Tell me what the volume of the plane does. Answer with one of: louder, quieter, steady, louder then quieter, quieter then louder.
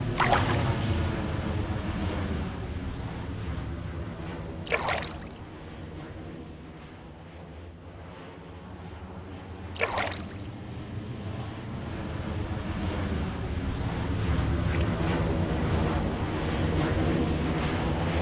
quieter then louder.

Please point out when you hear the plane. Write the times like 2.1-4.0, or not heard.
0.0-18.1.